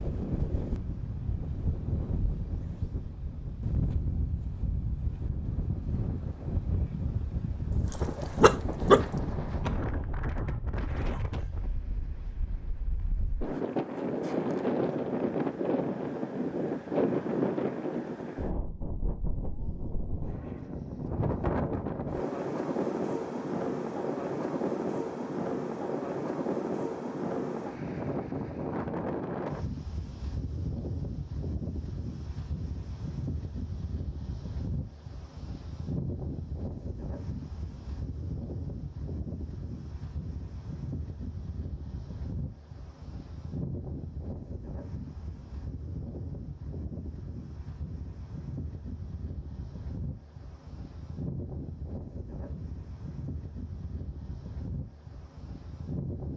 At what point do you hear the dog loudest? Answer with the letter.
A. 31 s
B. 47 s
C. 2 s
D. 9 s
D.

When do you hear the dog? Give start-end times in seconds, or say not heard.
6.9-9.0.